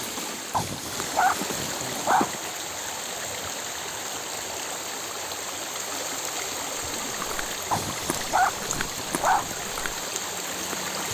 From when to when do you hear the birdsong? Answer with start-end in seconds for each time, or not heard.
not heard.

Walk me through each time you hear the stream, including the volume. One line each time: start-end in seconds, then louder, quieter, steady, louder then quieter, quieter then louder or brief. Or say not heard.
0.0-11.1 steady.